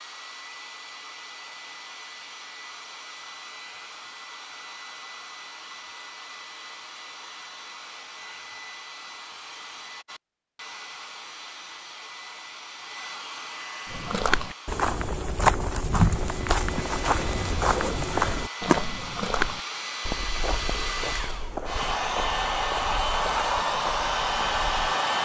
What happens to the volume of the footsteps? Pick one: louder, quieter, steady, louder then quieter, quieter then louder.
quieter.